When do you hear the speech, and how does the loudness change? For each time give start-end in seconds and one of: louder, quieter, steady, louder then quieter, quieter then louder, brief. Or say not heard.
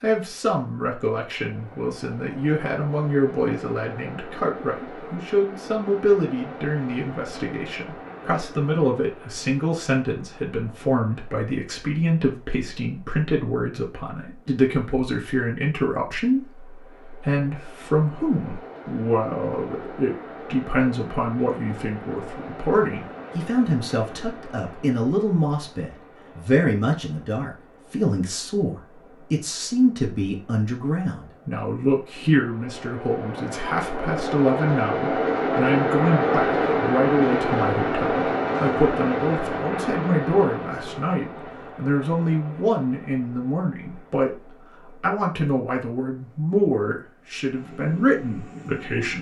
0.0-49.1 steady.